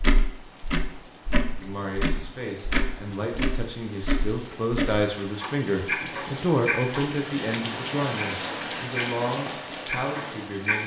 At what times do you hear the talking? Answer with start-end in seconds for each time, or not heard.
1.6-10.8.